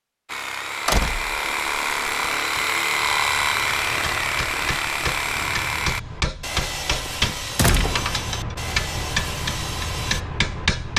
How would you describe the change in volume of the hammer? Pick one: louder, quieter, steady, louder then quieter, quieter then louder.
louder.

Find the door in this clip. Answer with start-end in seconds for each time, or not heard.
0.8-1.9, 7.0-8.2.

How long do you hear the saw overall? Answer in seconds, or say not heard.
10 s.